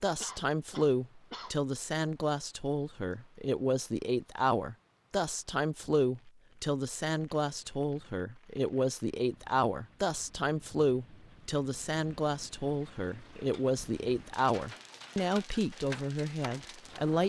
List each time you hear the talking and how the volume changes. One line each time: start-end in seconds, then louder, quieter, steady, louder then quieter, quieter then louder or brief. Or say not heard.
0.0-17.2 steady.